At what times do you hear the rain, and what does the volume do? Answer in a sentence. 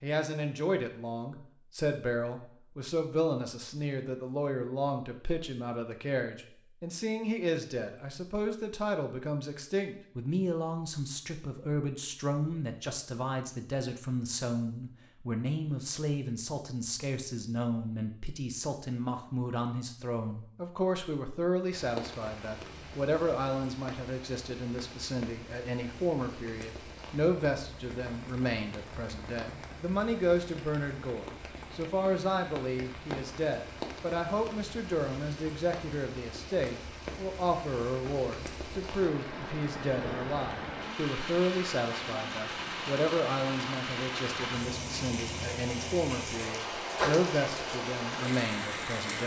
The rain can be heard from 21.7 to 49.2 s, getting louder.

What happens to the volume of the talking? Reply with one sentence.
The volume of the talking stays about the same.